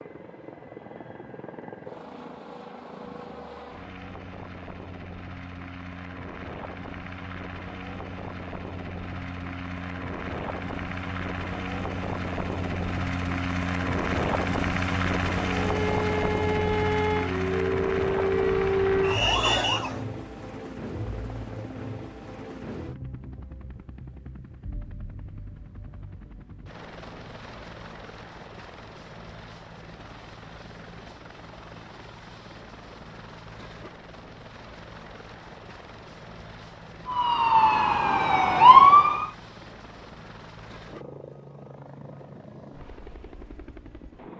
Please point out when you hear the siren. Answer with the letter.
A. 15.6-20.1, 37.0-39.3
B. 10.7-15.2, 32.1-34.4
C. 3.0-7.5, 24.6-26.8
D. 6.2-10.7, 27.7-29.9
A.